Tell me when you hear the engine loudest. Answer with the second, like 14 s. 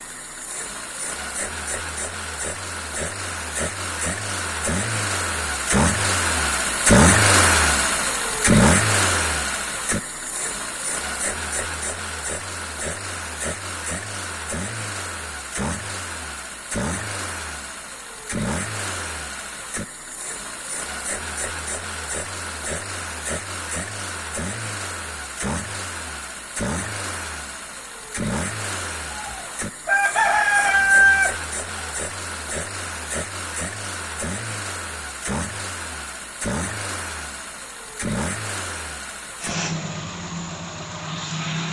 7 s.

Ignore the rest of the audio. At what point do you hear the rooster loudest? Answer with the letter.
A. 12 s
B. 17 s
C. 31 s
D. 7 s
C.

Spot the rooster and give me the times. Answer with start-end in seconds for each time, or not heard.
29.1-31.4.